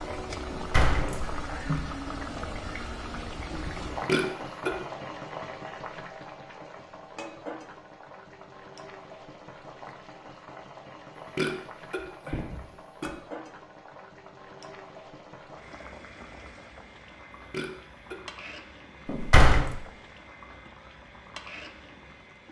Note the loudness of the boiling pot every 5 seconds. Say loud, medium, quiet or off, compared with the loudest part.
loud, medium, medium, medium, medium.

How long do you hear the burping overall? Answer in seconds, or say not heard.
3 s.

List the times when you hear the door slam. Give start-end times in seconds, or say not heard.
0.5-1.8, 19.1-19.7.